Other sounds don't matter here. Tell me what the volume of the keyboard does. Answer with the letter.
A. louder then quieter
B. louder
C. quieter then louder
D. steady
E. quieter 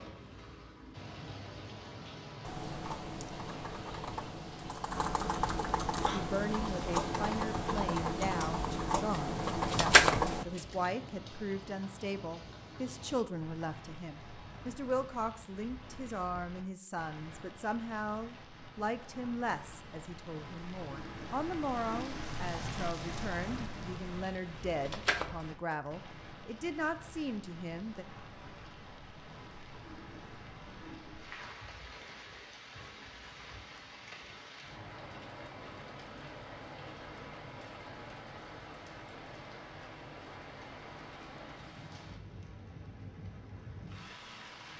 B.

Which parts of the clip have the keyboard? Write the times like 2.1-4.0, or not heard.
2.4-10.4.